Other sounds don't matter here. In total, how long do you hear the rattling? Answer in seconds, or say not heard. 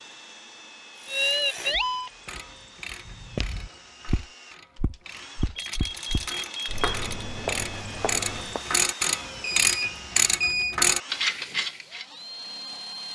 2 s.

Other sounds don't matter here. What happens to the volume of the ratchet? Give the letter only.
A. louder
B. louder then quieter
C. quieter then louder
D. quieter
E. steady
C.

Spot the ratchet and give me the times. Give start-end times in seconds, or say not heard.
0.9-12.1.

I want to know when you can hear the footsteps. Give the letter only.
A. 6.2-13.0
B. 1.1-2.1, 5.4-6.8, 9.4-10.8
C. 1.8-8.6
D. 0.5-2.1
C.